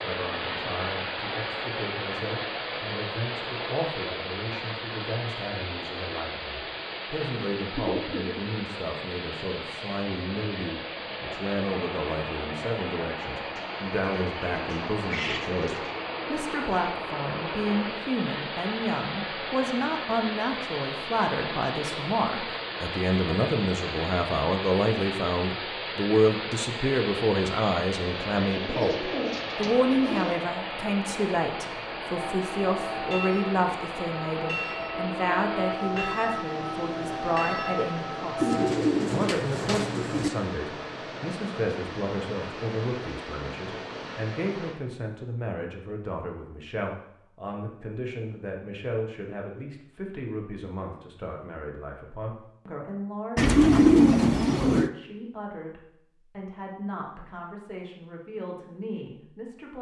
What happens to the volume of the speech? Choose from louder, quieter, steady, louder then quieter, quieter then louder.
louder then quieter.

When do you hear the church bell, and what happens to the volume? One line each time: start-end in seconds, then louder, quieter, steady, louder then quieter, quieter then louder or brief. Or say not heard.
32.1-38.7 steady.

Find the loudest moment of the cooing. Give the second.
54 s.